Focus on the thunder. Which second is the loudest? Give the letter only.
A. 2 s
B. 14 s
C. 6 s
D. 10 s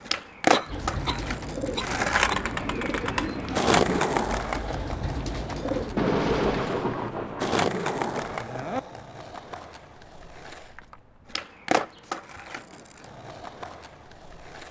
C.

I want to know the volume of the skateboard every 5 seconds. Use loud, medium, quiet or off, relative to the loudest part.
loud, medium, medium.